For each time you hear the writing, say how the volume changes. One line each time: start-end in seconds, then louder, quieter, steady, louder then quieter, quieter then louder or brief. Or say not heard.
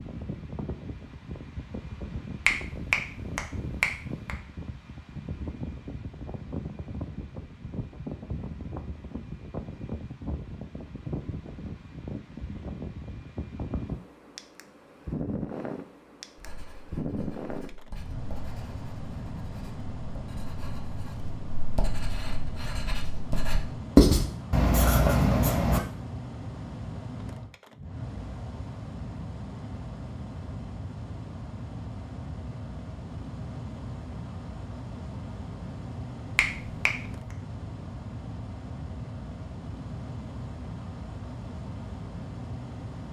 16.4-25.8 louder.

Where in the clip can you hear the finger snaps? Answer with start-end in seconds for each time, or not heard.
2.5-4.3, 36.4-37.0.